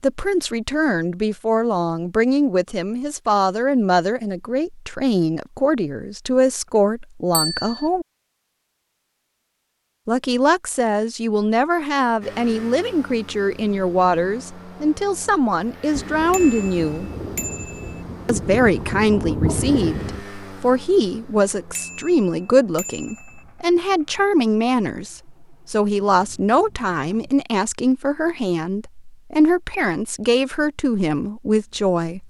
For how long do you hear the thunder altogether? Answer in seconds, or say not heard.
4 s.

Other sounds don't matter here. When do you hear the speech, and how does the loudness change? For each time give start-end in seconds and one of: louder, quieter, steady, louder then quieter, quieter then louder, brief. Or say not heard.
0.0-8.1 steady
10.1-17.1 steady
18.2-32.2 steady.